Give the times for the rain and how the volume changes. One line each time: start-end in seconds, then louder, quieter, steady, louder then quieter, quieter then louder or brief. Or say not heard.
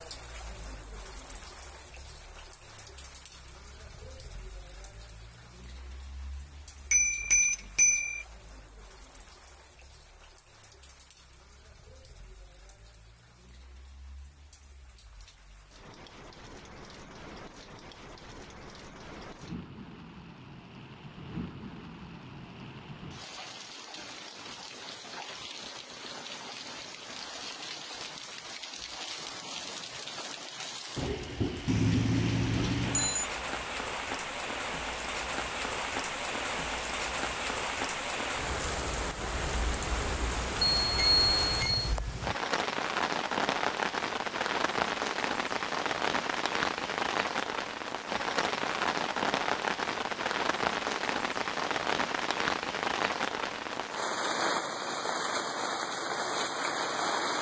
0.0-57.3 louder.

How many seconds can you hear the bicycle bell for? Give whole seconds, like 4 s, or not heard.
4 s.